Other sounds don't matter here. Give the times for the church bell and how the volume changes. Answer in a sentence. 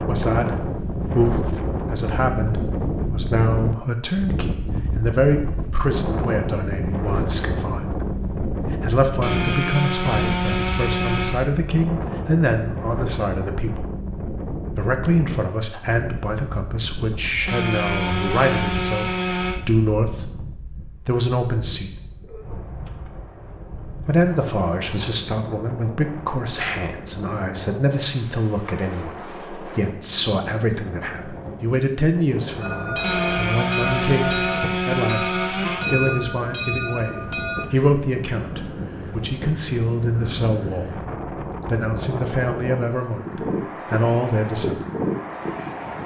The church bell can be heard from 32.6 to 37.6 s, at a steady volume.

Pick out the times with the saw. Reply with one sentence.
You can hear the saw from 9.2 to 11.5 s, from 17.4 to 19.6 s and from 33.0 to 35.9 s.